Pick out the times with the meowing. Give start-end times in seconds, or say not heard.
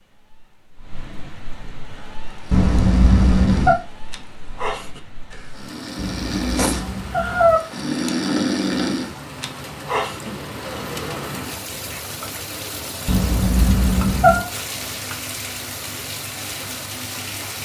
2.5-3.8, 6.0-7.6, 13.1-14.4.